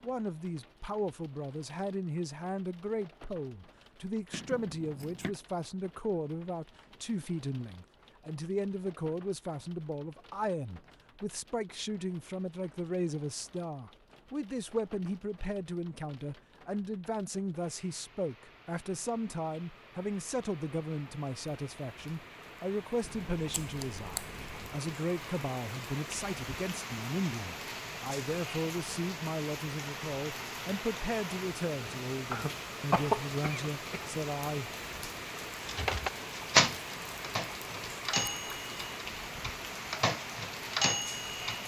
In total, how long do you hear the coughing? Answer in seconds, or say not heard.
2 s.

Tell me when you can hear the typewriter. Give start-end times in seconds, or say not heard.
35.6-41.6.